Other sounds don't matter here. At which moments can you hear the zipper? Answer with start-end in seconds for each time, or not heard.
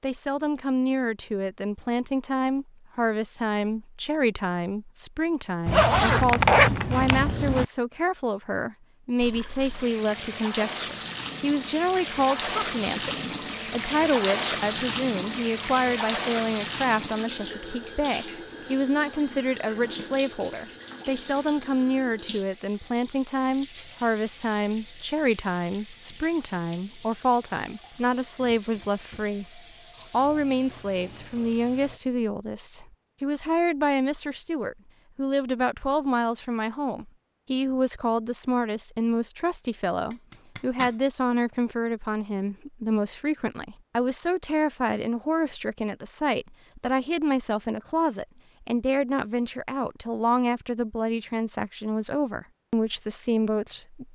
5.7-7.7, 40.1-41.0.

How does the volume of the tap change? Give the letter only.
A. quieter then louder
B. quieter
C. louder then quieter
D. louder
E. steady
B.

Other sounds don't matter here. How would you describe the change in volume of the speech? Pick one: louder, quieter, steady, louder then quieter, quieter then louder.
steady.